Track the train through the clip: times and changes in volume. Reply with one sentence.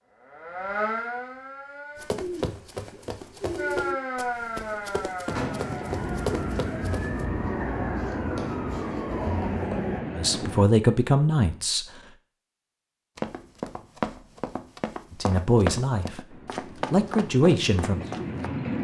You can hear the train from 5.2 to 10.7 s, at a steady volume; and briefly from 16.2 to 18.7 s.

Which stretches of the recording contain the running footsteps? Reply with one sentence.
You can hear the running footsteps from 1.9 to 7.2 s and from 13.2 to 18.5 s.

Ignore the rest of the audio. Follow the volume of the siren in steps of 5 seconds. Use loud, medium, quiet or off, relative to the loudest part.
loud, loud, off, off.